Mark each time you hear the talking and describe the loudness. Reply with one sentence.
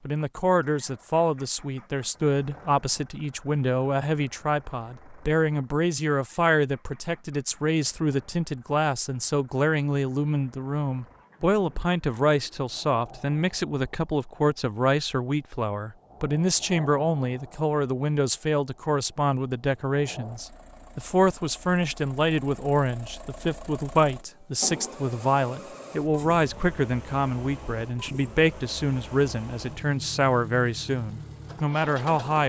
The talking can be heard from 0.1 to 32.4 s, at a steady volume.